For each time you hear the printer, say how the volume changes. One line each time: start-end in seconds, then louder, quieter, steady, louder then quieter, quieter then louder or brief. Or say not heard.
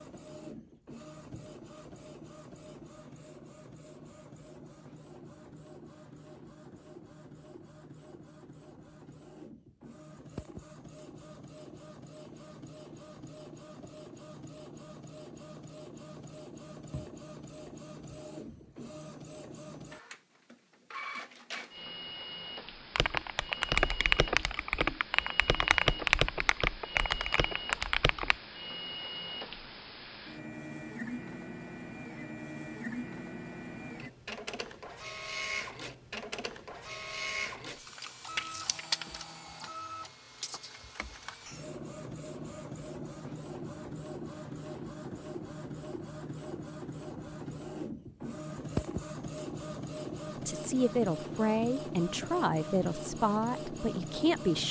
0.0-54.6 louder.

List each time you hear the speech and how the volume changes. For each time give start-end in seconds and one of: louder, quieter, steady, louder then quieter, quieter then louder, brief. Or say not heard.
50.5-54.6 quieter.